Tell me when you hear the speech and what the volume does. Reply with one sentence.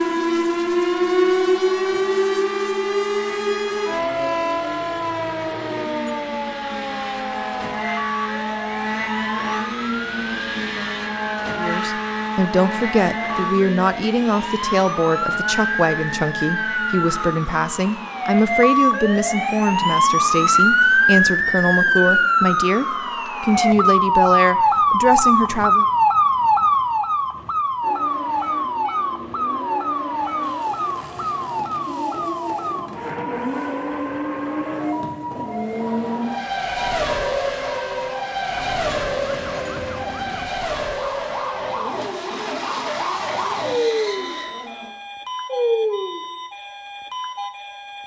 You can hear the speech from 11.6 to 25.9 s, at a steady volume.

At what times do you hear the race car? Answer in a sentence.
The race car can be heard from 0.0 to 22.1 s and from 27.8 to 44.9 s.